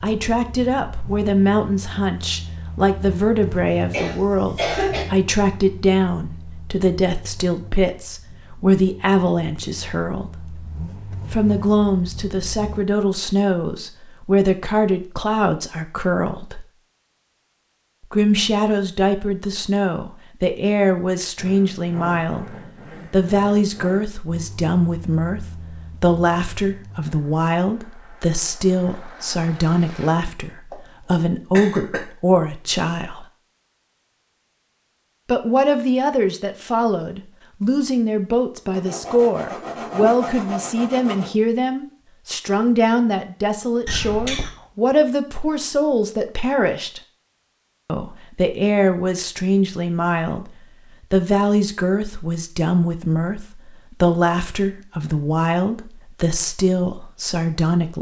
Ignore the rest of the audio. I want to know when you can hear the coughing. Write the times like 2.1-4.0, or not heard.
3.9-5.0, 30.7-32.0, 43.9-44.5.